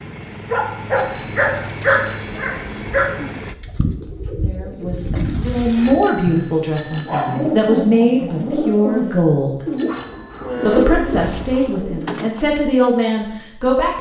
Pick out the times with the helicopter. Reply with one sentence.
You can hear the helicopter from 0.0 to 3.5 s.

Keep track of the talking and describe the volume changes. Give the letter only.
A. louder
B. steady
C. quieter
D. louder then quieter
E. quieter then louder
B.